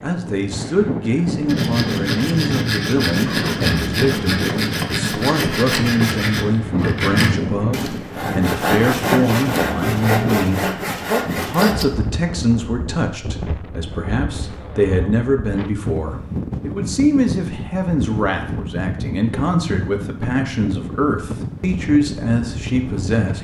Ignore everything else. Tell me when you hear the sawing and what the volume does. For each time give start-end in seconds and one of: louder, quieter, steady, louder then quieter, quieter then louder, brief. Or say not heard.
1.4-11.8 steady.